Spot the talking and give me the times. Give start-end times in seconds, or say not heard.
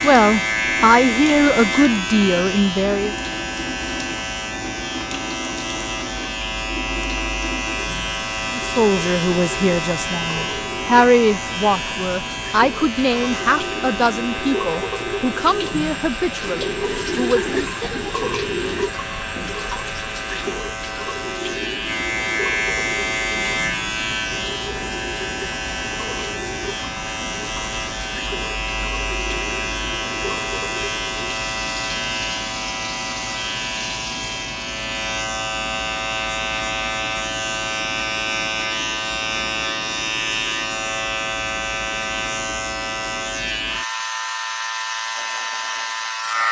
0.0-3.1, 8.6-18.0.